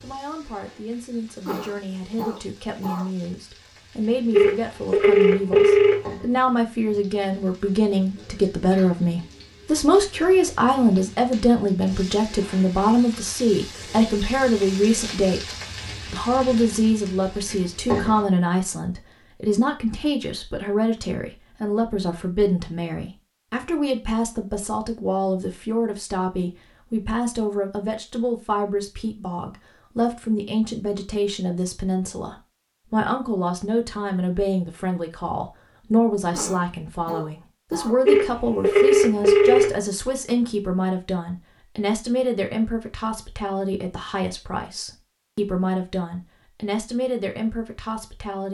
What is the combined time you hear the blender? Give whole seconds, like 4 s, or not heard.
not heard.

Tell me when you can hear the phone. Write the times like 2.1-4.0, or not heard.
4.3-6.0, 38.0-39.7.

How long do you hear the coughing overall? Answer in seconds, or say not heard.
3 s.